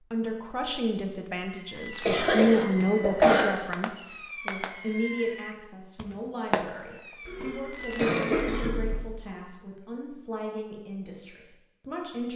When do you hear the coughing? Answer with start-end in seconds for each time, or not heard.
2.0-3.5, 7.2-8.9.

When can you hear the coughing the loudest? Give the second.
3 s.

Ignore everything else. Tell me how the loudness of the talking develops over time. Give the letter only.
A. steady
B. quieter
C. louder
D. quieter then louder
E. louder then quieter
B.